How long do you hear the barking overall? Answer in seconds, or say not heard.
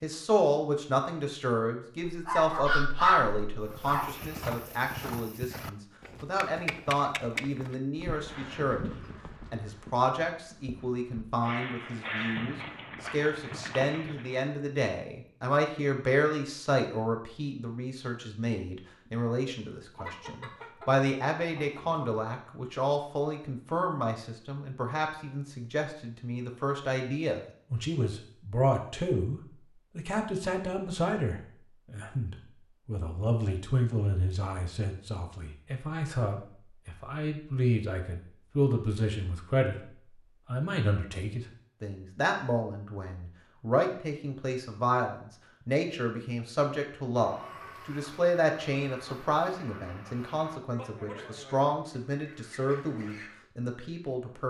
2 s.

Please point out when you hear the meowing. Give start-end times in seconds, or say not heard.
not heard.